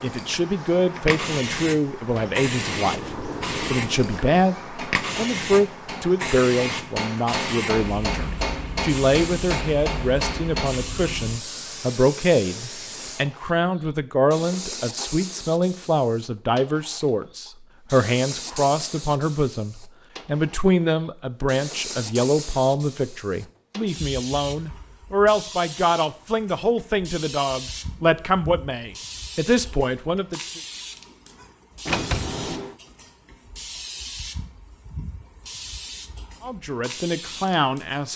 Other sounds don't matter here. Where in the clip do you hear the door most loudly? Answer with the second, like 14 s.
32 s.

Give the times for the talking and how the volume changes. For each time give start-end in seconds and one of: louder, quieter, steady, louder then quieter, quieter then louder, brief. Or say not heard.
0.0-30.6 steady
36.4-38.1 brief.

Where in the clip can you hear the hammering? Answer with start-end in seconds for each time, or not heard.
4.6-10.7.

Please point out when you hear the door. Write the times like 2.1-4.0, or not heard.
2.1-4.4, 31.9-32.8.